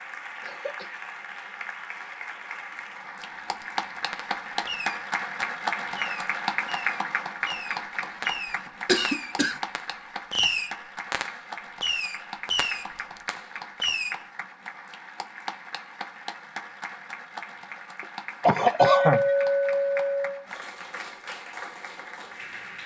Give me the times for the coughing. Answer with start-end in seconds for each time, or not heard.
0.4-1.0, 8.8-9.6, 18.4-19.3.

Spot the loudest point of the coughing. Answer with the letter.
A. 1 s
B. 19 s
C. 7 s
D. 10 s
B.